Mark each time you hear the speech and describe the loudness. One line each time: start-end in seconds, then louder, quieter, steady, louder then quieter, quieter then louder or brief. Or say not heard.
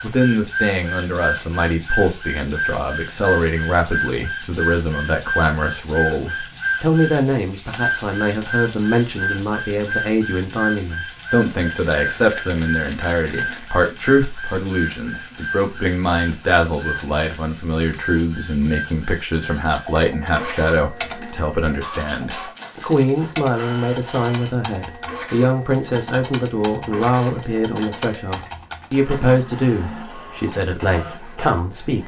0.0-32.0 steady.